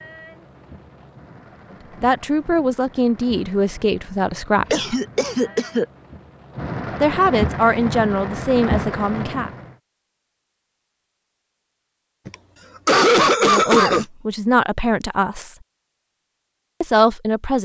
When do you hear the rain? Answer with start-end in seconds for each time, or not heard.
0.0-9.8.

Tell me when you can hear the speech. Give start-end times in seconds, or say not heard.
2.0-5.0, 7.0-9.5, 13.4-15.6, 16.8-17.6.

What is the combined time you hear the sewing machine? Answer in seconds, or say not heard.
not heard.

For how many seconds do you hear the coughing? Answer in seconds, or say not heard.
3 s.